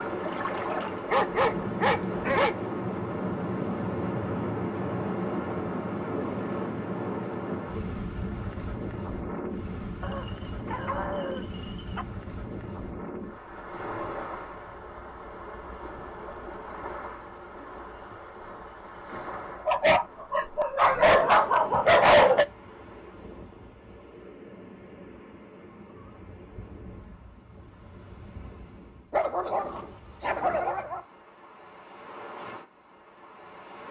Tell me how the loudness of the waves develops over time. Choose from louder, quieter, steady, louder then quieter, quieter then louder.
quieter.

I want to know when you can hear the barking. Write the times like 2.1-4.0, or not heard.
1.1-2.5, 10.0-12.1, 19.6-22.4, 29.1-31.0.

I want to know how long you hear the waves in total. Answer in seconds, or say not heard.
34 s.